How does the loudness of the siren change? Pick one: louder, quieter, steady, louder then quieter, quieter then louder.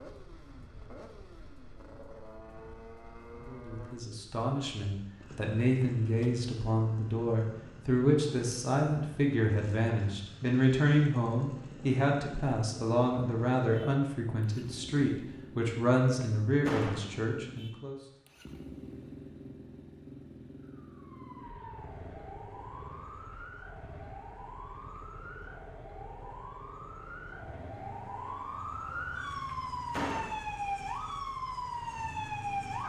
louder.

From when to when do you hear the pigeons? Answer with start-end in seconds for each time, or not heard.
not heard.